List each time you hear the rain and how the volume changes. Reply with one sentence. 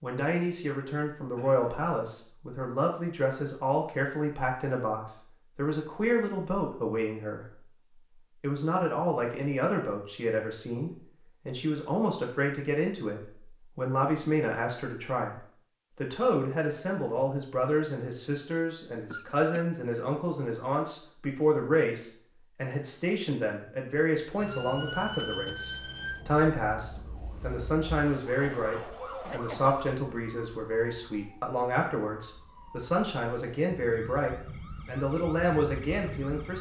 You can't hear the rain here.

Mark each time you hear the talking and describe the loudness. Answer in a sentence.
You can hear the talking from 0.0 to 36.5 s, at a steady volume.